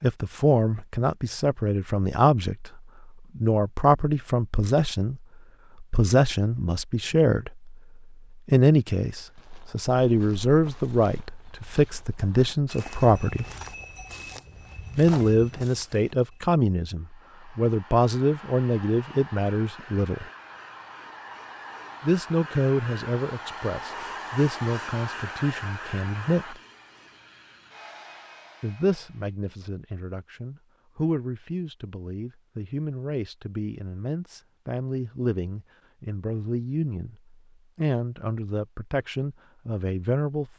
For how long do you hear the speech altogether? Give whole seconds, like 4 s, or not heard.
35 s.